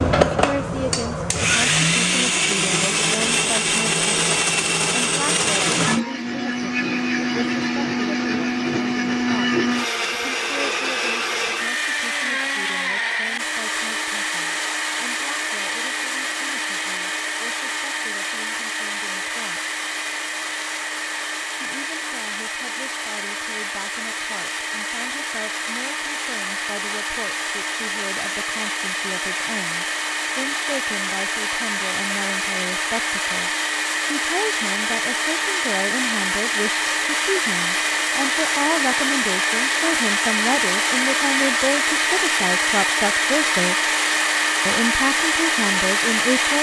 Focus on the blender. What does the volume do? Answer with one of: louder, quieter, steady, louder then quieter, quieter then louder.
quieter then louder.